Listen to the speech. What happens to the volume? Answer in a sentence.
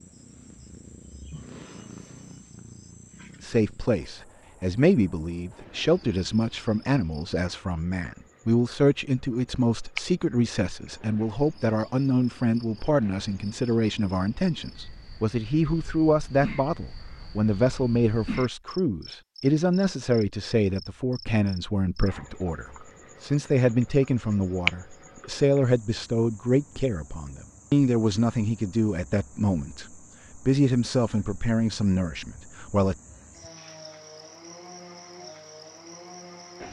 The volume of the speech stays about the same.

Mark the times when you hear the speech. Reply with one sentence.
The speech can be heard from 3.4 to 33.0 s.